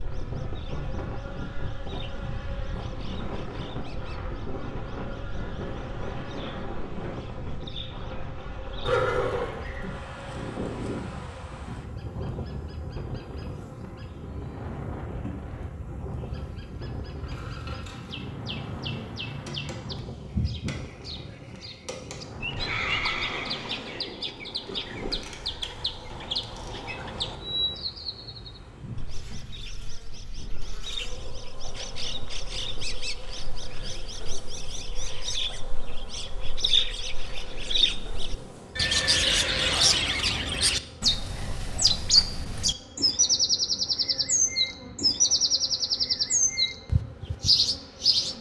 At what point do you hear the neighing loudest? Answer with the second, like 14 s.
9 s.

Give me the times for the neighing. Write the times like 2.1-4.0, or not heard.
8.8-9.9, 22.6-24.1, 38.8-40.0.